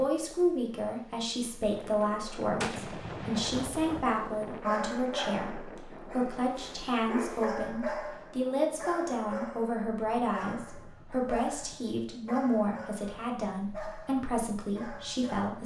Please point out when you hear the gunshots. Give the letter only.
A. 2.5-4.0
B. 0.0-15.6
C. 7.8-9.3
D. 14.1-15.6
A.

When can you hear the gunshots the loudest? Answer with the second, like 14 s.
3 s.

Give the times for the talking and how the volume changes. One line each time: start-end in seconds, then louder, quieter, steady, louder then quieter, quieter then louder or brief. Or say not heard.
0.0-15.6 steady.